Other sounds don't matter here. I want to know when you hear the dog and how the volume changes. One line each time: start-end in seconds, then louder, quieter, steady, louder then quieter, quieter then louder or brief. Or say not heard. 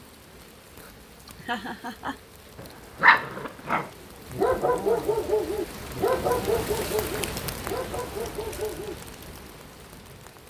2.5-8.9 quieter.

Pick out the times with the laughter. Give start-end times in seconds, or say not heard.
1.2-2.2.